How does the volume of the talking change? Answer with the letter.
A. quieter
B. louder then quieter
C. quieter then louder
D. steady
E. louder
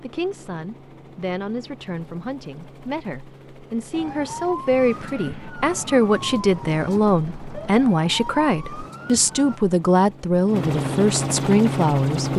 E.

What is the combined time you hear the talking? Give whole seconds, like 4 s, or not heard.
12 s.